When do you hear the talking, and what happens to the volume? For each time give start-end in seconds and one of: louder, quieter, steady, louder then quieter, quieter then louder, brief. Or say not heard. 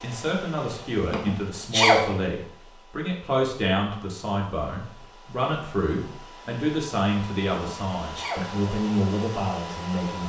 0.0-10.2 steady.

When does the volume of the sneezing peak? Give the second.
2 s.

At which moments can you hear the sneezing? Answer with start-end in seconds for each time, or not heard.
1.1-2.0, 7.5-8.5.